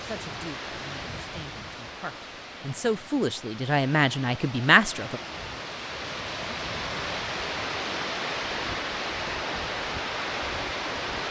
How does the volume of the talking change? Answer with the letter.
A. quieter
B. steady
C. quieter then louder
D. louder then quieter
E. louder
E.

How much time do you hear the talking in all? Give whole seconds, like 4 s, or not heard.
5 s.